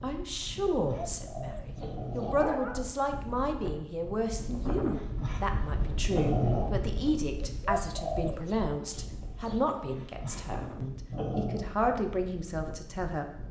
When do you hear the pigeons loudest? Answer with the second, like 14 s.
8 s.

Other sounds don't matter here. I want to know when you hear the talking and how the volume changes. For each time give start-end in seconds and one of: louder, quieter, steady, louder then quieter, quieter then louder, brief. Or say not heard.
0.0-13.4 steady.